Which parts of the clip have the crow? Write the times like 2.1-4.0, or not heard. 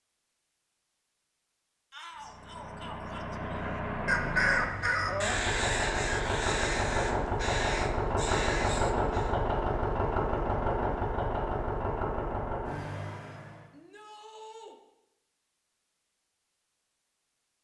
3.6-9.3.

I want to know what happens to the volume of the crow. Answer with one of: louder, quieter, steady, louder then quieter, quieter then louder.
quieter.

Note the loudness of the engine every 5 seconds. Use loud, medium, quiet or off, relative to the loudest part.
medium, loud, loud, off.